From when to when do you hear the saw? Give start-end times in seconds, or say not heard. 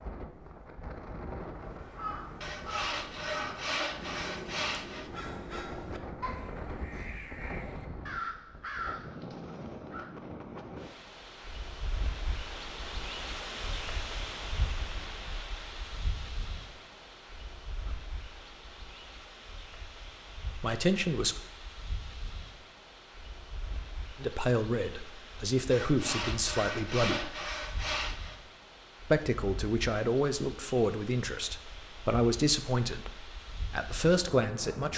2.4-5.1, 25.7-28.4.